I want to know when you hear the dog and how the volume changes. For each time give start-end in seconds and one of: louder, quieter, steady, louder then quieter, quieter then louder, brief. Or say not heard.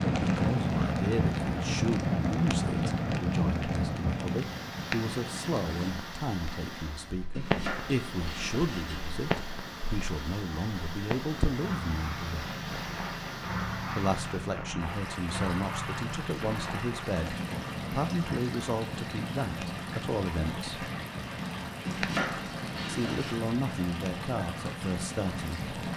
not heard.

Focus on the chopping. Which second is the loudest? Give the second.
22 s.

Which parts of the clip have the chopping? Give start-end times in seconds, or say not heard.
7.3-9.2, 21.9-23.4.